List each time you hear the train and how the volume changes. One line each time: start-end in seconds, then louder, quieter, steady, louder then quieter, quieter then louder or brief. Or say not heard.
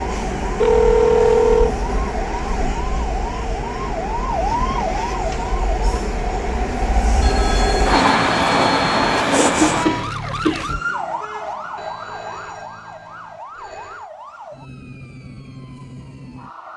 0.0-10.1 louder.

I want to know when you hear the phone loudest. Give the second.
1 s.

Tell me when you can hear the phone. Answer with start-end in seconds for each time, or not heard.
0.6-1.8, 7.2-9.2, 11.8-14.1.